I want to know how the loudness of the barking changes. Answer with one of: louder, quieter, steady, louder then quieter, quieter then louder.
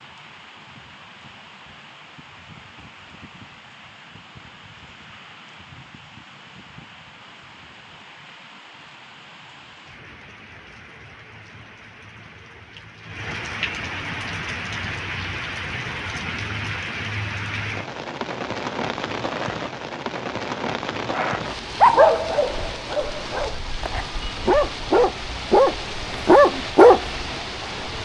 quieter then louder.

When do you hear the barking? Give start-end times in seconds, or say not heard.
21.1-27.1.